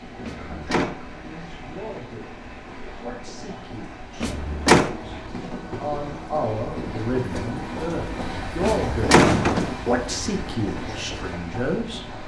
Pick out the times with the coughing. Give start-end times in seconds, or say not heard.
not heard.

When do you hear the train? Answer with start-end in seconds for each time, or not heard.
0.0-12.2.